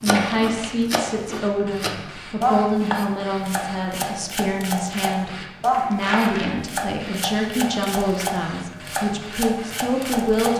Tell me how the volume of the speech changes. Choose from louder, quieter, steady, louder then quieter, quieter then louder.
steady.